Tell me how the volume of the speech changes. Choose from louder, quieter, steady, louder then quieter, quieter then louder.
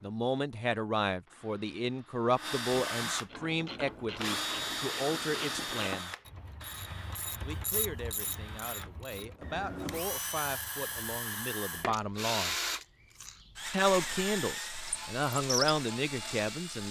quieter then louder.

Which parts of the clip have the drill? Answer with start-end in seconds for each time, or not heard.
0.0-16.8.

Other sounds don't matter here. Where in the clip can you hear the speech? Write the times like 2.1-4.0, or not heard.
0.0-6.2, 7.5-12.6, 13.7-16.8.